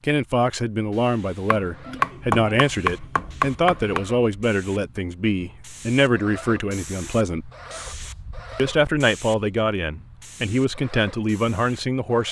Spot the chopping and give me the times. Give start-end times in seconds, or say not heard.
1.4-4.0.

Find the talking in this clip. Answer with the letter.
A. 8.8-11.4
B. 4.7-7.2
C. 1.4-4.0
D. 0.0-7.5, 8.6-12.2
D.